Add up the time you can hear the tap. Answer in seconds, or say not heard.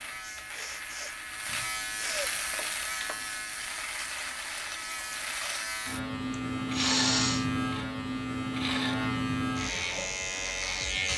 3 s.